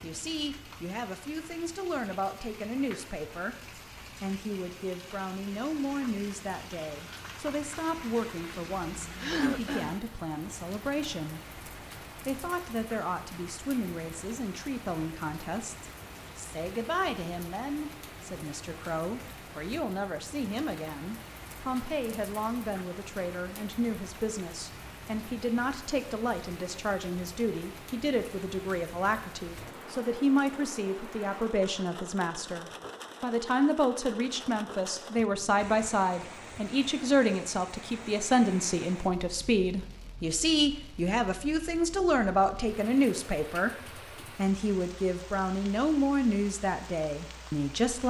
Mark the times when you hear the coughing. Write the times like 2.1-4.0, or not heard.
9.2-10.0.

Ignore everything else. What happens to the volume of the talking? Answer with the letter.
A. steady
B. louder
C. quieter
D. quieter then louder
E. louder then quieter
B.